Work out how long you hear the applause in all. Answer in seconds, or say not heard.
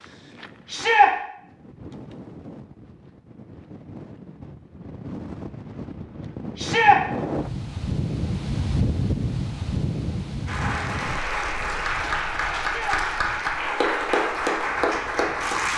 5 s.